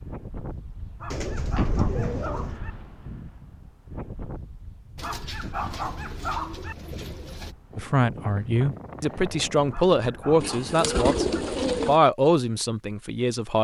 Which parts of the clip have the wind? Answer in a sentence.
You can hear the wind from 0.0 to 10.4 s.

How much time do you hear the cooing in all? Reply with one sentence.
You can hear the cooing for 6 seconds altogether.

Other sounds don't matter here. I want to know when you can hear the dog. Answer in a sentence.
You can hear the dog from 1.0 to 2.8 s, from 5.0 to 6.8 s and from 9.7 to 11.2 s.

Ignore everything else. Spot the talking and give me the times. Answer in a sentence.
The talking can be heard from 7.8 to 11.2 s and from 11.8 to 13.5 s.